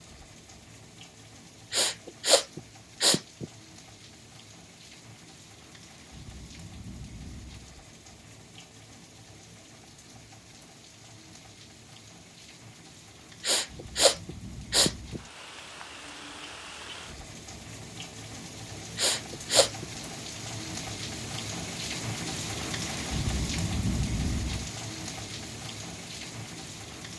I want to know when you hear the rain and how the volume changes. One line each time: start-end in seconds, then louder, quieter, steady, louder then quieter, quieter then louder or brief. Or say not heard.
0.0-27.1 louder.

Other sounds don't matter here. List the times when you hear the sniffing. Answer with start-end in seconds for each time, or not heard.
1.7-3.5, 13.4-15.2, 18.9-19.9.